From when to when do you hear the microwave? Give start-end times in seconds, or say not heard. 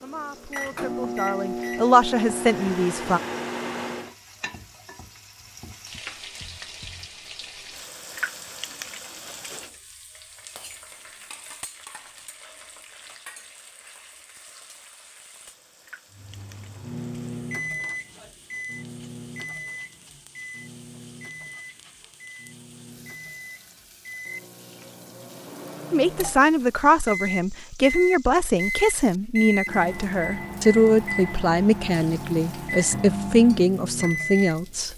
0.0-4.2, 16.1-34.9.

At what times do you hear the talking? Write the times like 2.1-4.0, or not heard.
0.0-3.2, 25.9-34.9.